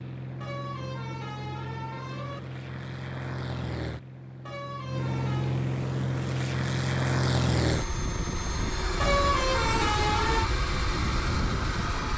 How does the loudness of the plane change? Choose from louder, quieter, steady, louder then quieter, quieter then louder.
louder.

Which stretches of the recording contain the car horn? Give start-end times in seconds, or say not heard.
0.4-2.4, 4.5-5.6, 9.0-10.5.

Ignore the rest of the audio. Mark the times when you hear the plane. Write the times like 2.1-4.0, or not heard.
0.0-12.1.